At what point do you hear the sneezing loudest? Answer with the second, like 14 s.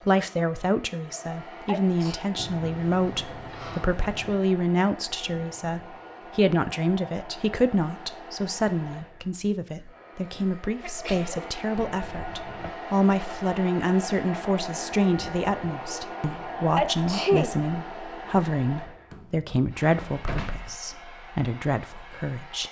17 s.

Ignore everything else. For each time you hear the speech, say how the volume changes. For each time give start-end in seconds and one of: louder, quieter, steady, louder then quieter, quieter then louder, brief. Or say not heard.
0.1-22.6 steady.